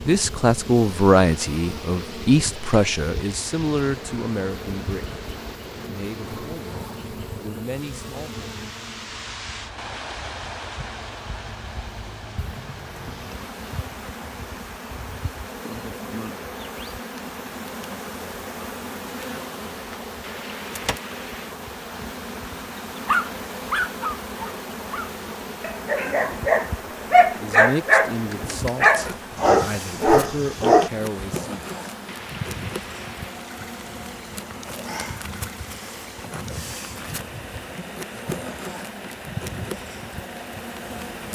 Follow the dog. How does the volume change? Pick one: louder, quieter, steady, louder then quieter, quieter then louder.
louder.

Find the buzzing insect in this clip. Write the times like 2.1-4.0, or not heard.
0.0-41.3.